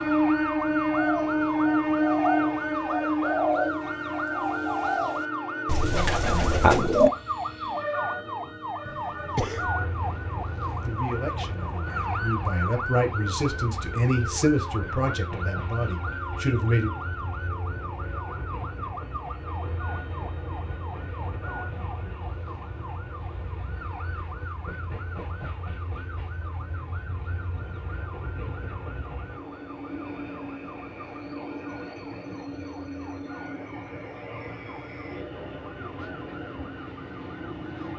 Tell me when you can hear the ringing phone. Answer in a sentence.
The ringing phone can't be heard in this clip.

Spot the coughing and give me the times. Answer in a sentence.
You can hear the coughing from 8.8 to 9.7 s.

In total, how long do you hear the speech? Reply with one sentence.
The speech can be heard for 6 seconds in total.